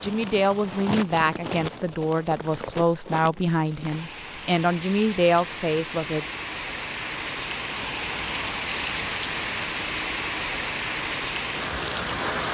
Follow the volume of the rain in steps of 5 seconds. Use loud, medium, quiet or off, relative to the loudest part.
medium, loud, loud.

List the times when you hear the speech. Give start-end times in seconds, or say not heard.
0.0-6.2.